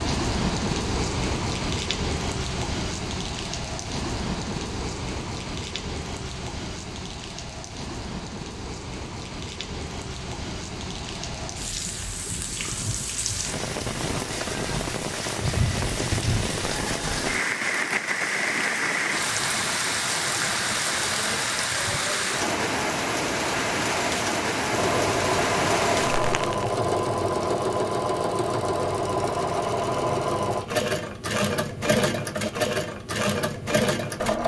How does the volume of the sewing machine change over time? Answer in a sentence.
The loudness of the sewing machine stays about the same.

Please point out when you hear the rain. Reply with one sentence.
The rain can be heard from 0.0 to 26.8 s.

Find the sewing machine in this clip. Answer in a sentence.
The sewing machine can be heard from 24.7 to 34.4 s.